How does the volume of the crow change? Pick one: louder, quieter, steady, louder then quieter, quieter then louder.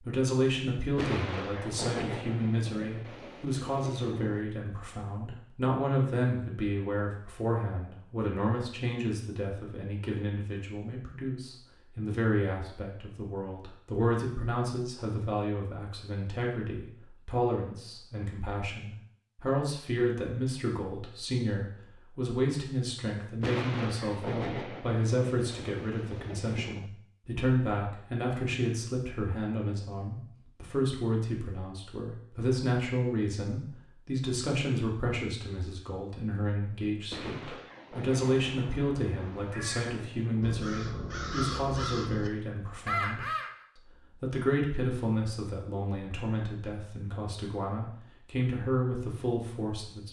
louder.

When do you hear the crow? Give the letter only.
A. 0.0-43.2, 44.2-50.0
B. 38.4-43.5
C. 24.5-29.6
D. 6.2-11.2
B.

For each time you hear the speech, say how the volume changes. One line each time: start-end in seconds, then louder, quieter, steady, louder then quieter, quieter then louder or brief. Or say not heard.
0.0-43.2 steady
44.2-50.0 quieter then louder.